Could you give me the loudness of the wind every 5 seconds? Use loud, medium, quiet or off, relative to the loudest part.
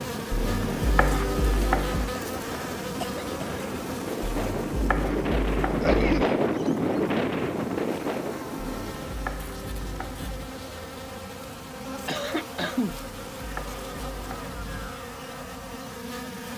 medium, loud, off, off.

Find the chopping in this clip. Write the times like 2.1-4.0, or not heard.
0.3-2.1, 4.2-6.2, 8.7-10.5, 12.8-14.9.